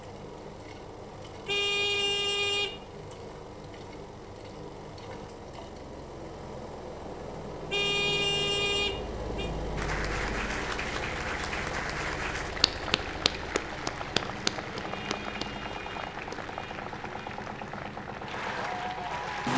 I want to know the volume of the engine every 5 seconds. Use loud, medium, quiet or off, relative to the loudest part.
medium, loud, loud, loud.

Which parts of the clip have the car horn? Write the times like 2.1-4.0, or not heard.
1.4-2.8, 7.7-9.5, 14.8-17.4.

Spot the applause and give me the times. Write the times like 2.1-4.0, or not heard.
9.8-19.5.